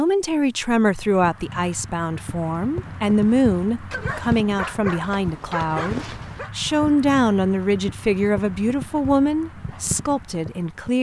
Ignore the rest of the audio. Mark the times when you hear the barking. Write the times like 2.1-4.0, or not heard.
3.9-6.5.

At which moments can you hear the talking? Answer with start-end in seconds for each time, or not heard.
0.0-10.9.